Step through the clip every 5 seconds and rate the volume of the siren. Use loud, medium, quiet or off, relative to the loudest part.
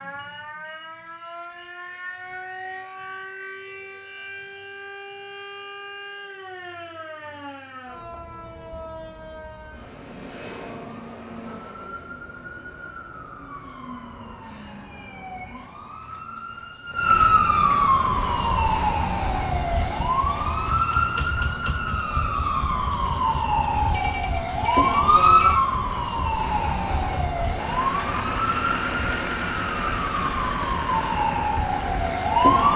quiet, quiet, quiet, loud, loud, loud, loud.